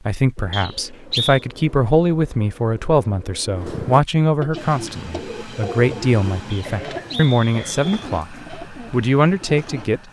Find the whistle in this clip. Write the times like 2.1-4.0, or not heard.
0.5-1.4, 6.5-8.1.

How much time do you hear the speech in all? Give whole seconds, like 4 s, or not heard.
10 s.